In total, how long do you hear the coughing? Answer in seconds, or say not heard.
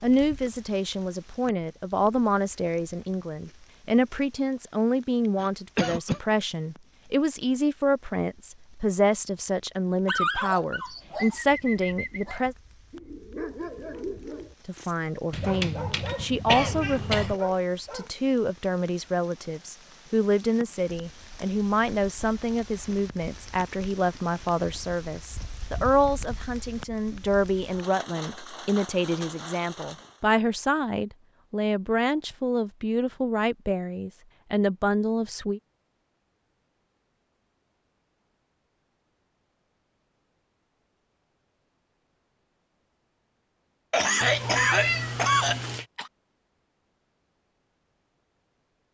4 s.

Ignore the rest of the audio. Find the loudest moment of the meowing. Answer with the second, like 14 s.
45 s.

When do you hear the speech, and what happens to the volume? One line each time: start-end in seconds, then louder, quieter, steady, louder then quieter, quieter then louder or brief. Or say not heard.
0.0-12.6 steady
14.7-35.6 steady.